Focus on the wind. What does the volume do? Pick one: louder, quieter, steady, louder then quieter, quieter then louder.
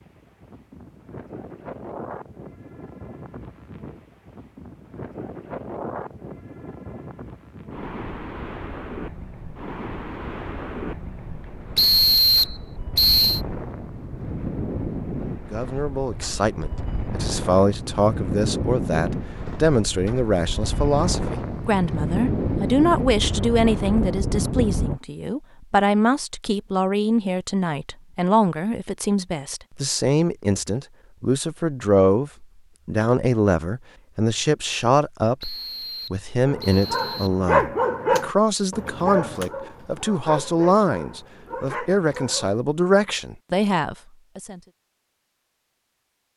louder.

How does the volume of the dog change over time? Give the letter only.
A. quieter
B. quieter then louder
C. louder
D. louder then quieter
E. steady
A.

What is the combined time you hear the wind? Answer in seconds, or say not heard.
25 s.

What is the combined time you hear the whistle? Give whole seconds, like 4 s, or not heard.
4 s.